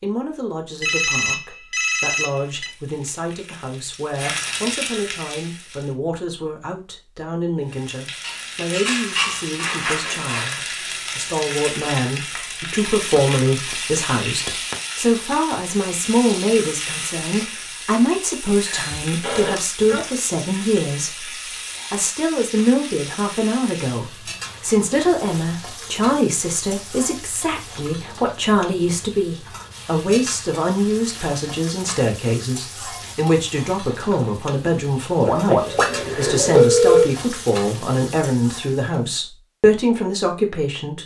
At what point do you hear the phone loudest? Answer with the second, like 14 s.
37 s.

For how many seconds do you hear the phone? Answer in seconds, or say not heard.
5 s.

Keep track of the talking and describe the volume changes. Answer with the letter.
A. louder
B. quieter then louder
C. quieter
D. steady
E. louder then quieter
A.